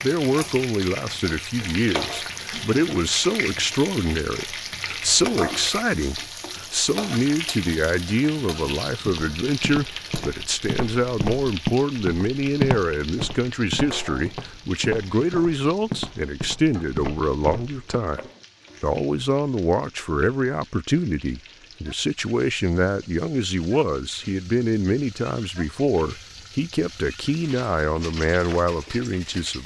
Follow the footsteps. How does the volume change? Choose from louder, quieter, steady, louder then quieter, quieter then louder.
louder then quieter.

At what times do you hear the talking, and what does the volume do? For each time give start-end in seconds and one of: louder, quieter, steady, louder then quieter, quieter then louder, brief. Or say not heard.
0.0-29.6 steady.